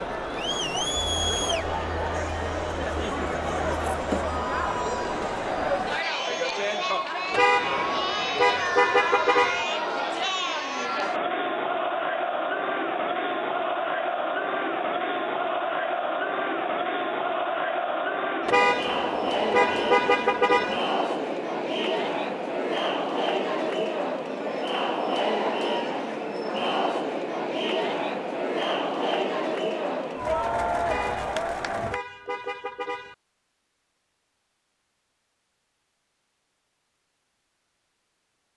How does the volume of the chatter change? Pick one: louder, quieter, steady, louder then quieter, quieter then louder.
steady.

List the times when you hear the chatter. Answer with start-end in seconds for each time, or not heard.
0.0-32.0.